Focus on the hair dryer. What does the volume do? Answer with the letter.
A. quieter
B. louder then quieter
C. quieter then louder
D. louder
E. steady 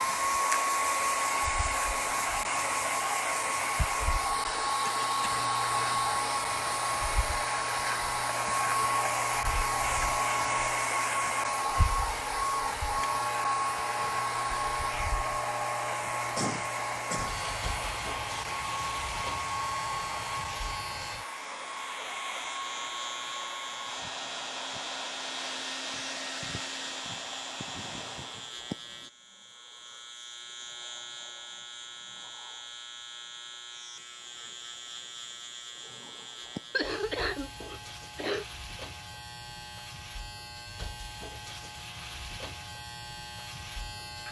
A.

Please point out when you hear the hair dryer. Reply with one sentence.
You can hear the hair dryer from 0.0 to 28.6 s.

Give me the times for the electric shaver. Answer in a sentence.
You can hear the electric shaver from 0.0 to 44.2 s.